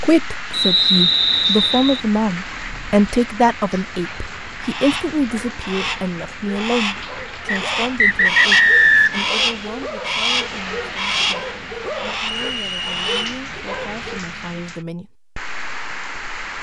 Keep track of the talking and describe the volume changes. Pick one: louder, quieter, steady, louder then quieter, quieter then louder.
quieter.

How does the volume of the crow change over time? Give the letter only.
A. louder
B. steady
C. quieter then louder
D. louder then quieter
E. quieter
D.